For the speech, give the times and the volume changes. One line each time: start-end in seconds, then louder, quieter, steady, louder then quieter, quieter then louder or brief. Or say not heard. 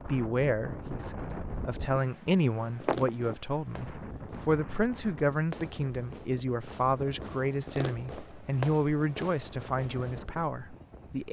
0.0-11.2 steady.